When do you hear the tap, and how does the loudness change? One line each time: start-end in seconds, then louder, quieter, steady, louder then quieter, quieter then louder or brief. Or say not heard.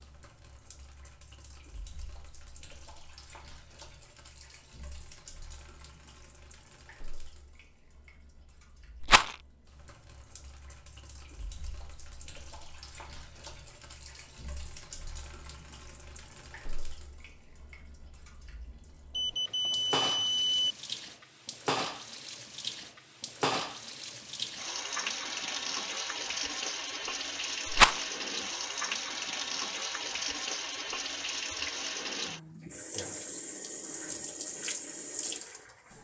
0.0-35.9 louder.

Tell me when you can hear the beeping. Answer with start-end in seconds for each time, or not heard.
19.1-20.8.